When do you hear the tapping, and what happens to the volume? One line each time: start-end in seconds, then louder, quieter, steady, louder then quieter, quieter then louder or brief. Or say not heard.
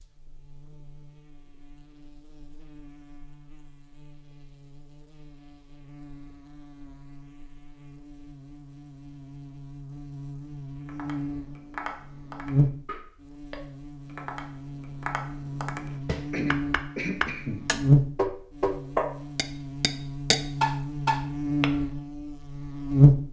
10.8-21.7 louder.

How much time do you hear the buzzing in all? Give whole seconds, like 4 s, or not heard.
23 s.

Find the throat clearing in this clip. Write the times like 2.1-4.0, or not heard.
16.3-17.6.